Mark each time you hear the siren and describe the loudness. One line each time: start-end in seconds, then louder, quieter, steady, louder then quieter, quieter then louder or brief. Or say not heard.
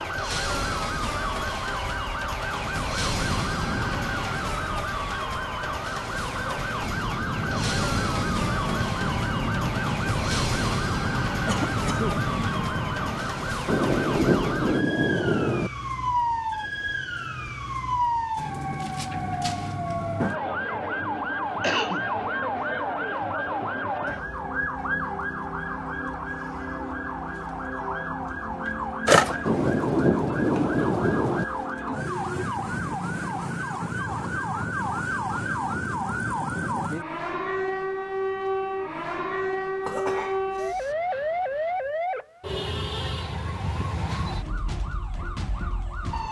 0.0-46.2 steady.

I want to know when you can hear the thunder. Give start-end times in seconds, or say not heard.
13.7-15.7, 29.4-31.4.